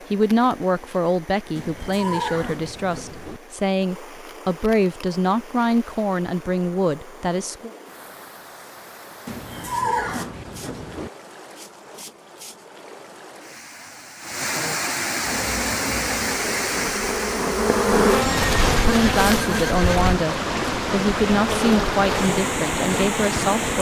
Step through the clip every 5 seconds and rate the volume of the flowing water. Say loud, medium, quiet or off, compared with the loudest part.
quiet, quiet, medium, loud, loud.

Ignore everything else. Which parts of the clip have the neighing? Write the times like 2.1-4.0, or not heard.
1.6-3.4, 9.2-11.1, 18.1-20.1.